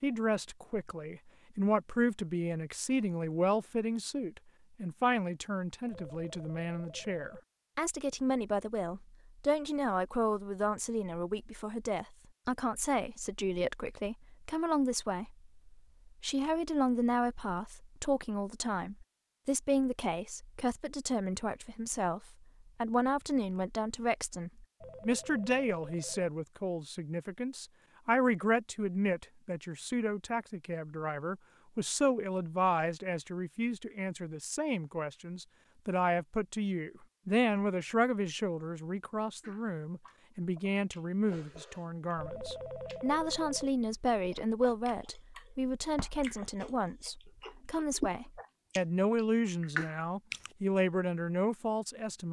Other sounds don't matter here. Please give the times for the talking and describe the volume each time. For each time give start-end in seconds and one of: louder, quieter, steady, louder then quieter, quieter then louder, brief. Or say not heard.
0.0-52.2 steady.